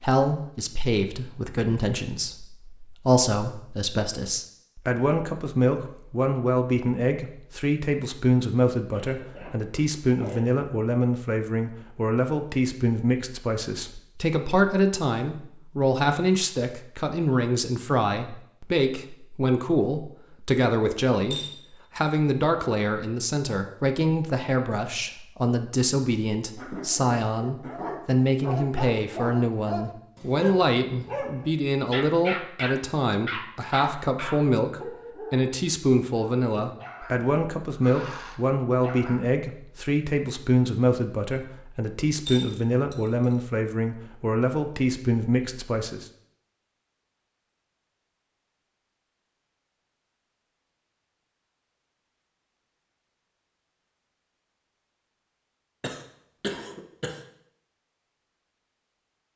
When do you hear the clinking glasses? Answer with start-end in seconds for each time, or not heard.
21.3-22.0, 42.2-43.2.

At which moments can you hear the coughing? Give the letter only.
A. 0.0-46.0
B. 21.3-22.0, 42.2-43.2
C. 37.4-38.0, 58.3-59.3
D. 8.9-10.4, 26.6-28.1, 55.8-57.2
D.